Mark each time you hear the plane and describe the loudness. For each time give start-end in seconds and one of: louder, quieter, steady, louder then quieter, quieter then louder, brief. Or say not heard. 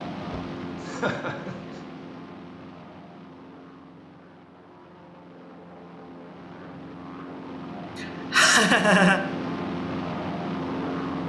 0.0-11.2 quieter then louder.